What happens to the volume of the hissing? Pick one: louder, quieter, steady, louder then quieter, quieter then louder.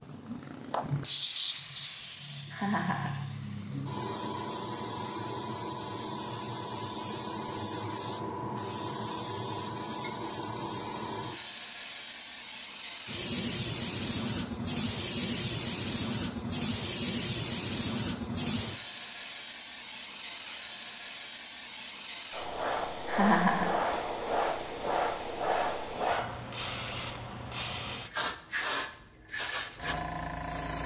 steady.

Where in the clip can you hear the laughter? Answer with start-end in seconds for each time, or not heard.
2.5-3.2, 23.1-23.8.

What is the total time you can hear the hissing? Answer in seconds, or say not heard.
31 s.